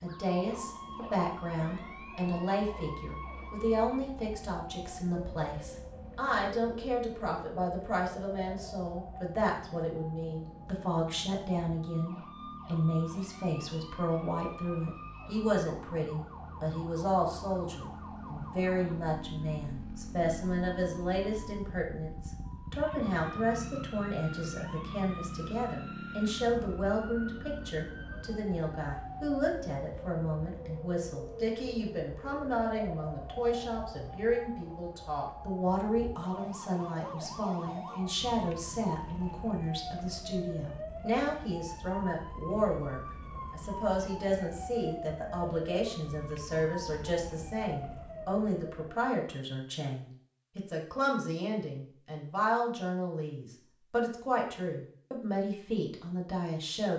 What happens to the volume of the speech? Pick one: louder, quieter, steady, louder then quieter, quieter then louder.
steady.